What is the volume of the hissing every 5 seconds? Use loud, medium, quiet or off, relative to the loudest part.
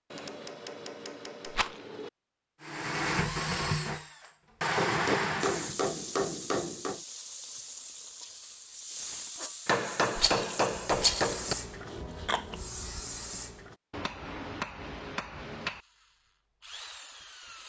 off, loud, loud, off.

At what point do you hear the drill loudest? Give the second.
5 s.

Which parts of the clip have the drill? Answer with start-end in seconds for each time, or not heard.
2.6-5.8, 15.6-17.6.